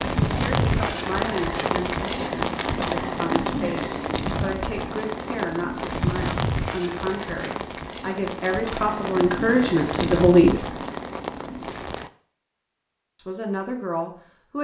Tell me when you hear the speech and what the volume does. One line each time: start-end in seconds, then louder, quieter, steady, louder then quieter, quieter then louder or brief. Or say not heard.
0.2-10.8 louder
13.2-14.5 brief.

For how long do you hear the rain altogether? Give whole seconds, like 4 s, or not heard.
12 s.